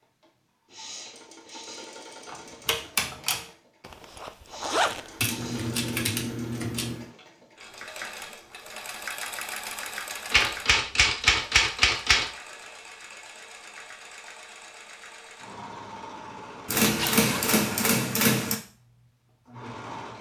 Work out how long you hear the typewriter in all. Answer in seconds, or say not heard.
7 s.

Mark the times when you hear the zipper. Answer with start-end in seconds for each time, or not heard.
3.8-5.7, 16.8-17.5.